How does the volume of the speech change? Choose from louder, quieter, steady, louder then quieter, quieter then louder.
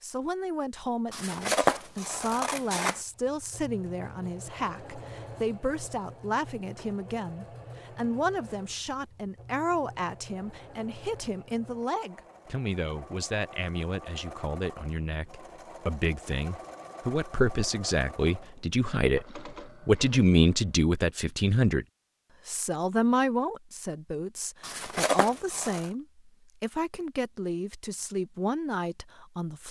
louder then quieter.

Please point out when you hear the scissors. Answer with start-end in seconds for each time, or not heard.
1.1-3.0, 24.6-25.9.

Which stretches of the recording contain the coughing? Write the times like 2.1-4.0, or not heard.
not heard.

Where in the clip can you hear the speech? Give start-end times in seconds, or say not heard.
0.0-21.9, 22.4-29.6.